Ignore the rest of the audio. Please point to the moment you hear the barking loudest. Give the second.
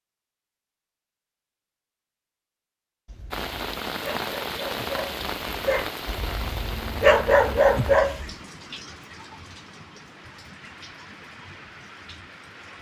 7 s.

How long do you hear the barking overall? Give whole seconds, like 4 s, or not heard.
5 s.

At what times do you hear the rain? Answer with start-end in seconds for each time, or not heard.
3.3-12.7.